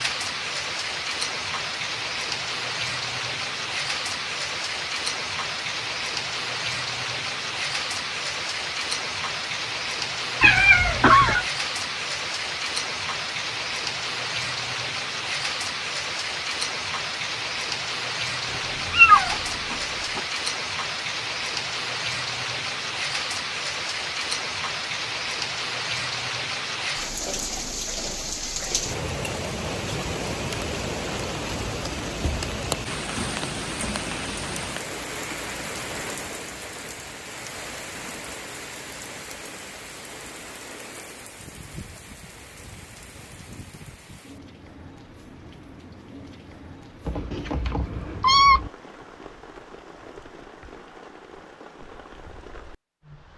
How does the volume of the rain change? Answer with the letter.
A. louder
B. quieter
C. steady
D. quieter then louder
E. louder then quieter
B.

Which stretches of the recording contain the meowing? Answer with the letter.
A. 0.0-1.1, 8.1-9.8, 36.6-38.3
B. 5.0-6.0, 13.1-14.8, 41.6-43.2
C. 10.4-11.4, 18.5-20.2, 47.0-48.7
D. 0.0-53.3
C.